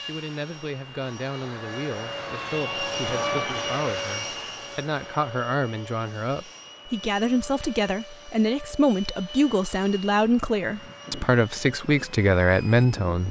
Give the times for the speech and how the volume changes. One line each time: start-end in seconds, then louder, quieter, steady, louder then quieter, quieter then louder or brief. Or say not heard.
0.0-13.2 louder.